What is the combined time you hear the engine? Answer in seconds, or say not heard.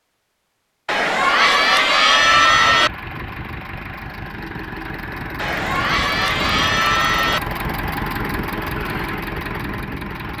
8 s.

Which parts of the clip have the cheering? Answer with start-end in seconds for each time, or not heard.
0.8-2.9, 5.3-7.4.